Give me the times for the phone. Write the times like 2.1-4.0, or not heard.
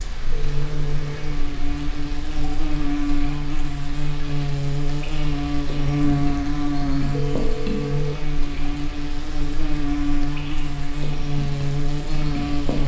0.3-1.4, 7.1-8.2.